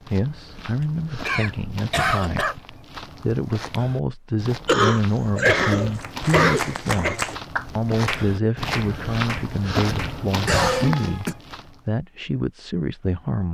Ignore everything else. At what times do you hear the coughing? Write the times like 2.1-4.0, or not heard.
1.2-2.5, 4.7-7.2, 10.4-11.3.